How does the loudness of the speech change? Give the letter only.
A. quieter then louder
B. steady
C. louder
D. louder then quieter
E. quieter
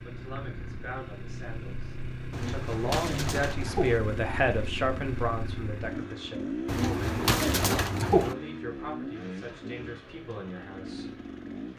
D.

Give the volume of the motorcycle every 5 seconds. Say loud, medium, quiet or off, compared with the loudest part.
loud, loud, medium.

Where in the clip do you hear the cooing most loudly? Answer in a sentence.
The loudest moment of the cooing is at 8 seconds.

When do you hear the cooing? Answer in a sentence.
You can hear the cooing from 2.3 to 4.0 s and from 6.7 to 8.3 s.